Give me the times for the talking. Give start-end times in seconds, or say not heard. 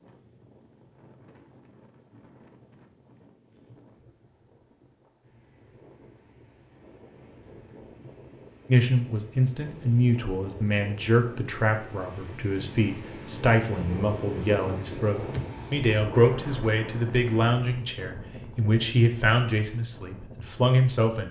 8.7-21.2.